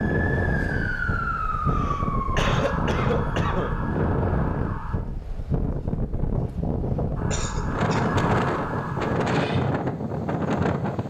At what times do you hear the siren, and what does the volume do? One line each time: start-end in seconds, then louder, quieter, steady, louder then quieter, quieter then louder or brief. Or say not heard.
0.0-5.0 quieter
7.2-9.6 brief.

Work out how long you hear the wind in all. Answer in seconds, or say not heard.
11 s.